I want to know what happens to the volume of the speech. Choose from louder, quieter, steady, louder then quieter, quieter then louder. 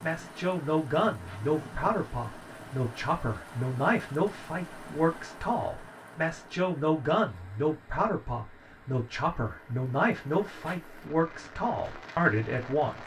steady.